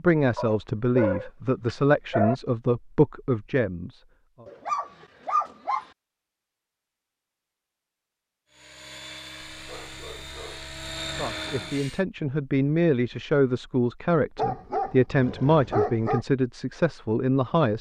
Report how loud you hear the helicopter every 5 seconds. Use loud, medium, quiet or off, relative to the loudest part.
off, medium, loud, off.